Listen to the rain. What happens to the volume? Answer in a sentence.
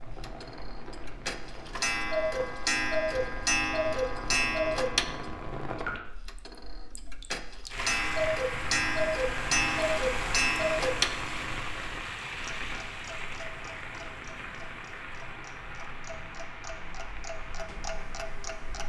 The volume of the rain goes up, then down.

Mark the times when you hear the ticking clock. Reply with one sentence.
The ticking clock can be heard from 0.0 to 18.8 s.